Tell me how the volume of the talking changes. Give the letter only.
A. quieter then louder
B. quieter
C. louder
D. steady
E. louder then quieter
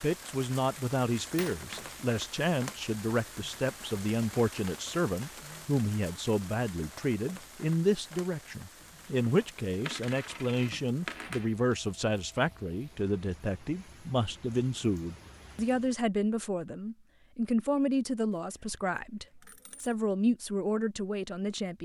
D.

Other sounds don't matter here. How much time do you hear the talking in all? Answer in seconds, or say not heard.
22 s.